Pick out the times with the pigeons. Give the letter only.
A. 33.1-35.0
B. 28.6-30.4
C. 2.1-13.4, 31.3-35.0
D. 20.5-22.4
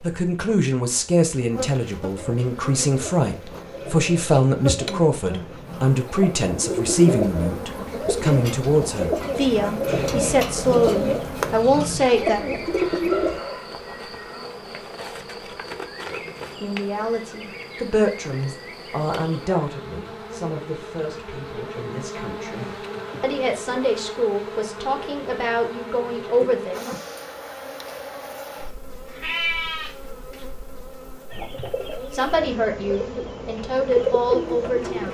C.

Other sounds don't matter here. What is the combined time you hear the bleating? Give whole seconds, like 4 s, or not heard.
2 s.